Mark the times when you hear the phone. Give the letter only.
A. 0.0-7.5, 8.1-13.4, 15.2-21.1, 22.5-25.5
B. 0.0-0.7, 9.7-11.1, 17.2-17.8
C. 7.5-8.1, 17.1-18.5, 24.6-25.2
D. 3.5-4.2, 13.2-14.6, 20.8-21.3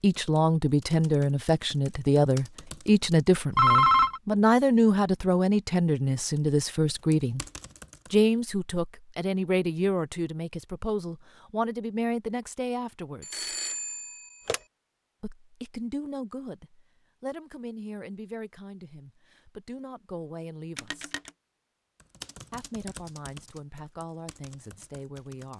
D.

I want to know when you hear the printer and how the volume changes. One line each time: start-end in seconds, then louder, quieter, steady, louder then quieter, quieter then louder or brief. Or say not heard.
not heard.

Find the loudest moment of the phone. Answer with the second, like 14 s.
4 s.